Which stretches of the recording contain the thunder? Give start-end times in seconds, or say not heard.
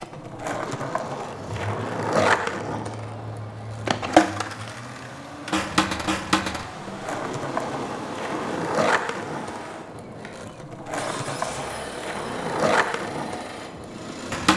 7.0-8.7.